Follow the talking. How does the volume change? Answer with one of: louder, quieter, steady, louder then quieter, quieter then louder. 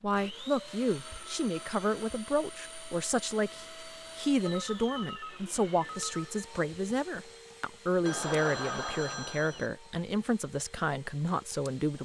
steady.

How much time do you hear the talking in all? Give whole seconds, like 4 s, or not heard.
12 s.